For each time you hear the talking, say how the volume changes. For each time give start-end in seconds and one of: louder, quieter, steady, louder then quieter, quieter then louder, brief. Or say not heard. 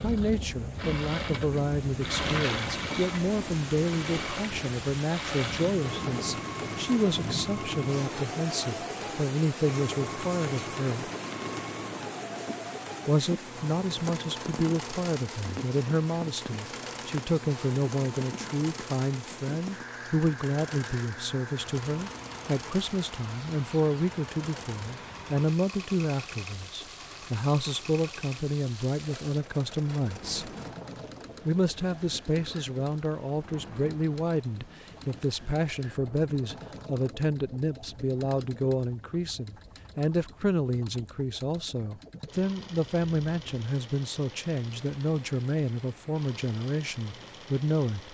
0.0-11.1 steady
13.1-30.5 steady
31.4-48.0 steady.